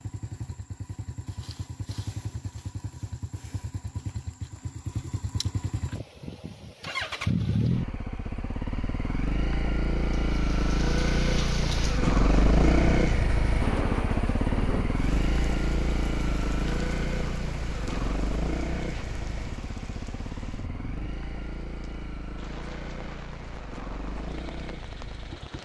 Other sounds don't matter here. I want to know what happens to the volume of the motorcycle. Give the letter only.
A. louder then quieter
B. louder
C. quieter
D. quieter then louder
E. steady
A.